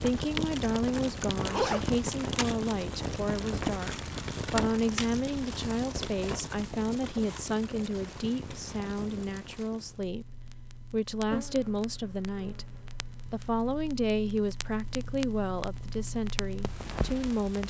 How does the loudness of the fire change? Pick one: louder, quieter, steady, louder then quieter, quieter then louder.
quieter then louder.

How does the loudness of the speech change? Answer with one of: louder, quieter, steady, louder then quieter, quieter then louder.
steady.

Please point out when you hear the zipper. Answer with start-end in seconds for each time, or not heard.
0.9-1.9.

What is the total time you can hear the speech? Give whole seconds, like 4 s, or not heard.
17 s.